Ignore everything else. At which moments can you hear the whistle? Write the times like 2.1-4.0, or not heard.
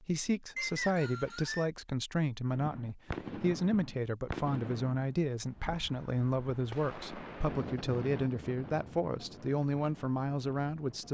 0.6-1.7.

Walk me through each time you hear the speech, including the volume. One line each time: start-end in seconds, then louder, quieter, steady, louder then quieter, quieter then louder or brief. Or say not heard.
0.0-11.0 steady.